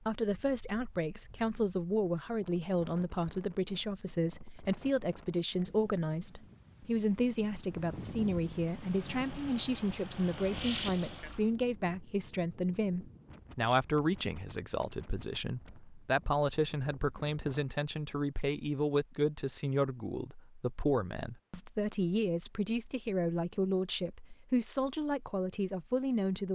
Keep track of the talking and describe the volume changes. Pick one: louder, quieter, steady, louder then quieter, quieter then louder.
steady.